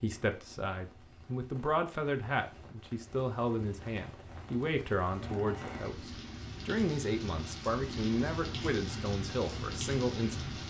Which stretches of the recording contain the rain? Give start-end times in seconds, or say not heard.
0.0-10.6.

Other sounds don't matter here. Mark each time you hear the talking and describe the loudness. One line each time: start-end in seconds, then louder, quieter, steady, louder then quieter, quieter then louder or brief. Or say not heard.
0.0-10.5 steady.